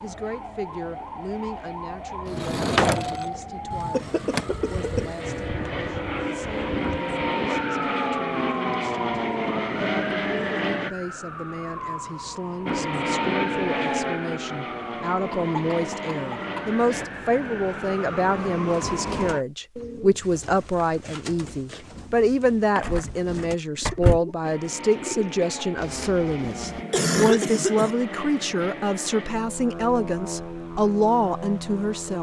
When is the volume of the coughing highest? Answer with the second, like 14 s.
27 s.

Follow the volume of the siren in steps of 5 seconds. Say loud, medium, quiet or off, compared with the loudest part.
loud, loud, loud, loud, off, off, off.